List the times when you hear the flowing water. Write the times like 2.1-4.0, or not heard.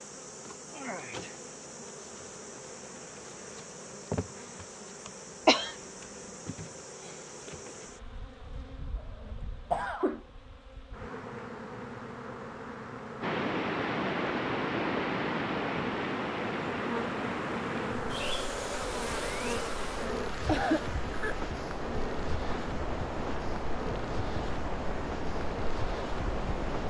13.2-26.8.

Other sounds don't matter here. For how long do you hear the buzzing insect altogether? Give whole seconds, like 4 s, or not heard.
27 s.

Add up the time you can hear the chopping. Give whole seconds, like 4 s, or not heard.
not heard.